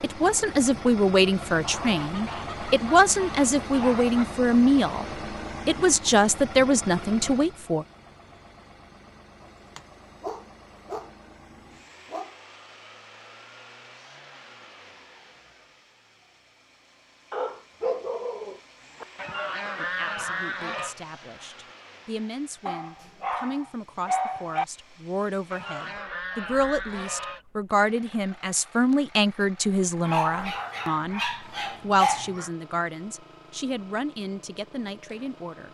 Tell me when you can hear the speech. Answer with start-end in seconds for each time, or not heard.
0.0-5.0, 5.7-7.8, 19.8-35.7.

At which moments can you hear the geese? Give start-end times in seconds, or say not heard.
1.6-4.0, 19.1-20.9, 25.5-27.4.